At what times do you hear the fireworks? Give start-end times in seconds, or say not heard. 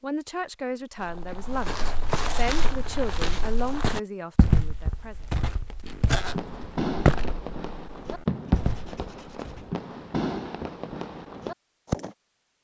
6.2-12.2.